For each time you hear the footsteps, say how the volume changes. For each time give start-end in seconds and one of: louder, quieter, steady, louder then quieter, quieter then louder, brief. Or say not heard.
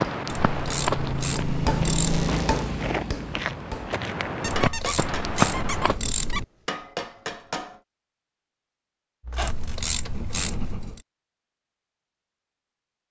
0.0-6.0 quieter then louder.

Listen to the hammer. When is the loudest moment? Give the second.
2 s.